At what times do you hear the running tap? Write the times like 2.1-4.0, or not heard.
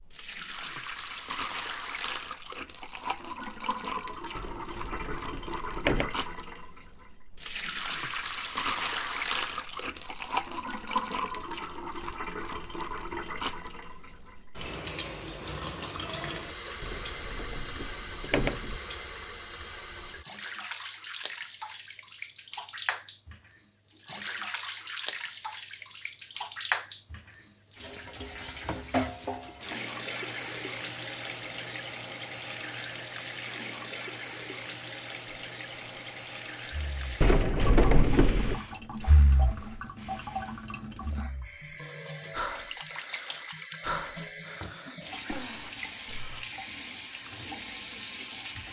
0.0-48.6.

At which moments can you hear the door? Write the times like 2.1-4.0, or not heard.
4.3-6.1, 16.8-18.8, 37.2-38.6.